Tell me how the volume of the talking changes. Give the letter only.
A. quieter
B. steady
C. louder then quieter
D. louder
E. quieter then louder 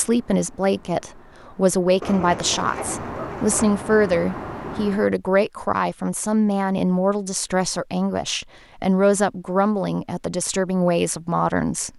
B.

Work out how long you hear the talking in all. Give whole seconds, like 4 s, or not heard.
12 s.